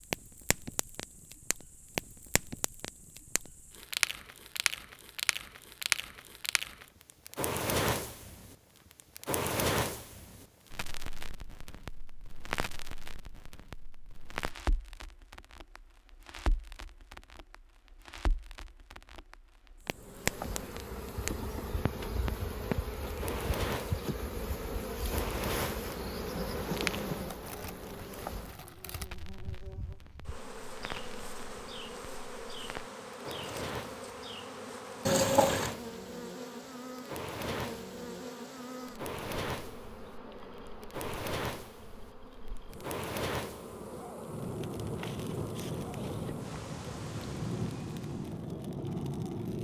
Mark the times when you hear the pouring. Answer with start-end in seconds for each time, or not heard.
35.0-35.8.